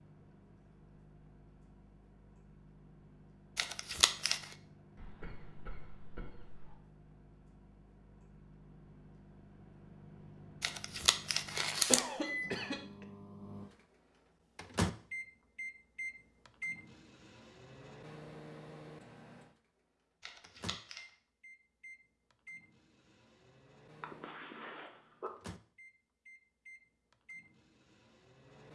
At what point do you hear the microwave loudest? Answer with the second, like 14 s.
15 s.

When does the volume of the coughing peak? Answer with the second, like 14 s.
12 s.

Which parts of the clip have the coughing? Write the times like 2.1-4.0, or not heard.
5.0-6.8, 11.8-13.1, 24.0-25.3.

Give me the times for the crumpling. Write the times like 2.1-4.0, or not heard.
3.5-4.5, 10.6-12.0, 20.2-21.1.